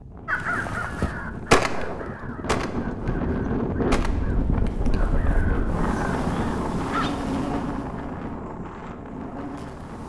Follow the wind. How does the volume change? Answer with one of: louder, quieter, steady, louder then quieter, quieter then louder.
louder then quieter.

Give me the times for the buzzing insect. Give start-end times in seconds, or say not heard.
5.7-10.0.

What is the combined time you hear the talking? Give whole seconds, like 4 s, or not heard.
not heard.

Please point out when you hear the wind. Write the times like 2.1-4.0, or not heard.
0.0-10.0.